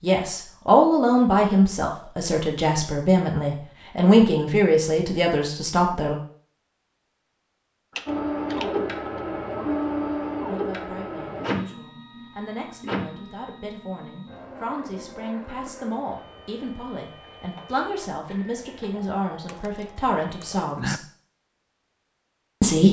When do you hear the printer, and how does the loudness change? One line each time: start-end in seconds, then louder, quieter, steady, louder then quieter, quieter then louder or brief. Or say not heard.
8.1-20.6 quieter.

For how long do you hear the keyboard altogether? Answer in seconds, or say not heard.
3 s.